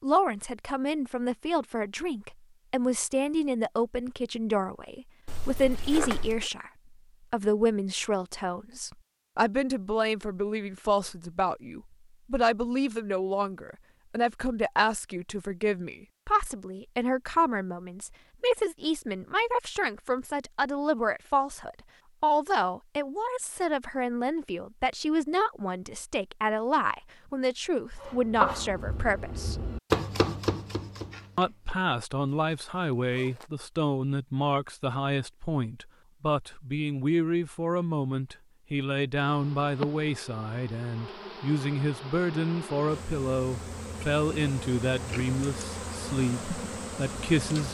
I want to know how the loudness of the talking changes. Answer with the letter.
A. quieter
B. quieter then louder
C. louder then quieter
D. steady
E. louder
D.